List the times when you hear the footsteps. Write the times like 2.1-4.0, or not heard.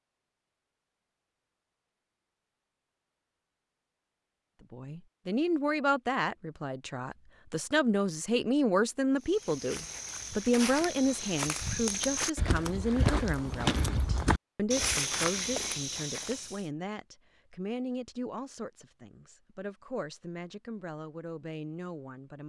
9.2-16.6.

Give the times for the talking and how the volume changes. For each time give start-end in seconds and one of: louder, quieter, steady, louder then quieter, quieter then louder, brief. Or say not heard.
4.6-22.4 quieter.